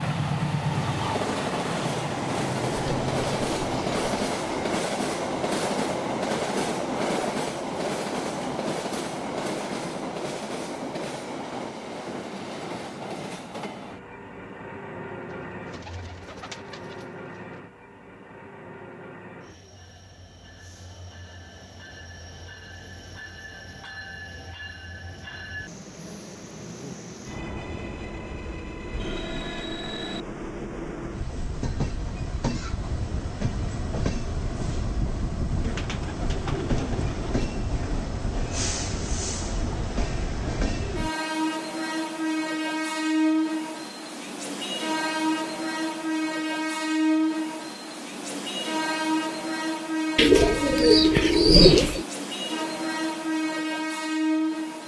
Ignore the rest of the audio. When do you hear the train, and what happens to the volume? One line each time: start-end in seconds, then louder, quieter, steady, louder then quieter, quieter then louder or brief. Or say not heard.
0.0-54.8 quieter then louder.